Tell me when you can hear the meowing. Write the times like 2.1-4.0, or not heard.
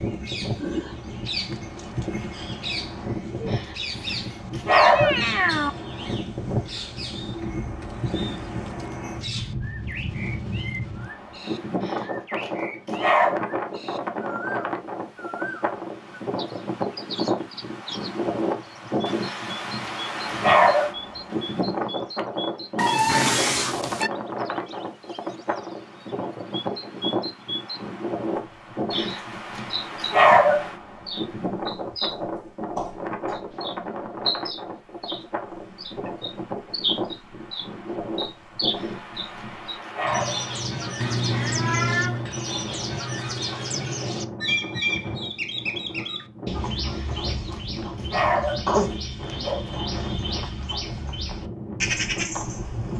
4.8-5.7, 22.8-24.1, 41.0-42.3.